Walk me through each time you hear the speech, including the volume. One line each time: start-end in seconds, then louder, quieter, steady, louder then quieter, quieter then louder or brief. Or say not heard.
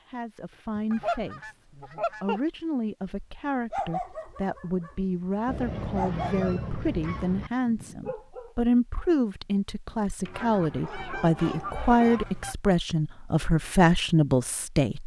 0.1-15.0 louder.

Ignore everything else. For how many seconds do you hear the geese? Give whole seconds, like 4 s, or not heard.
6 s.